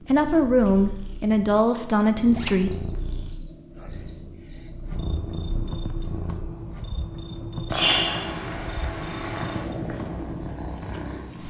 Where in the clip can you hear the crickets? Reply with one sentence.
The crickets can be heard from 0.0 to 11.4 s.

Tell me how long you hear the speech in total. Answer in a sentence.
You can hear the speech for 3 seconds altogether.